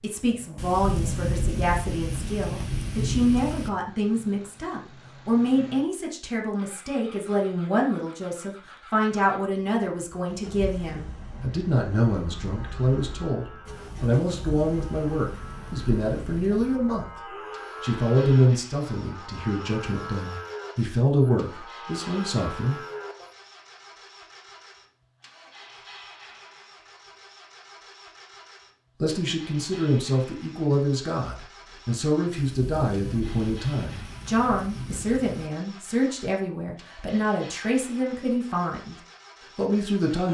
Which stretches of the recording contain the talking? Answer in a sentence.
The talking can be heard from 0.0 to 22.8 s, from 29.0 to 39.0 s and from 39.5 to 40.2 s.